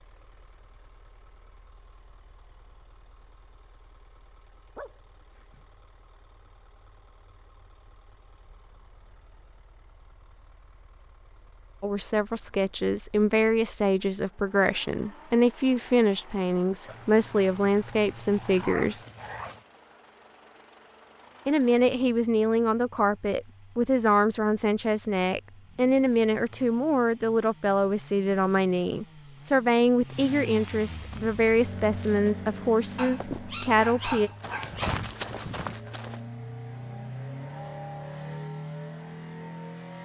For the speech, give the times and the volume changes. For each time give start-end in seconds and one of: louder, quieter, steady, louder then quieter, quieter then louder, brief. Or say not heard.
11.8-18.9 steady
21.4-34.3 steady.